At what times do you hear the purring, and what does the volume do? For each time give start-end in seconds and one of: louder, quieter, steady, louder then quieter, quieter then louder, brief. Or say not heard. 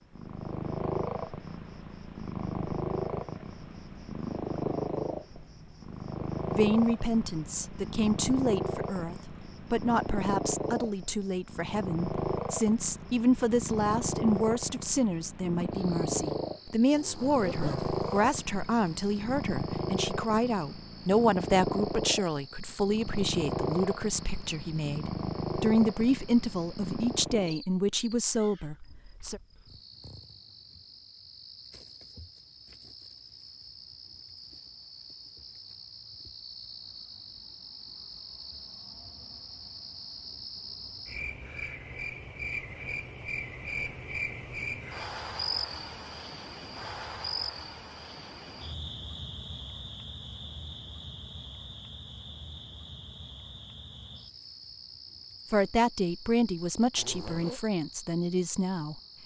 0.1-27.6 steady.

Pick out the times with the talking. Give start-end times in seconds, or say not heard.
6.5-29.4, 55.5-59.2.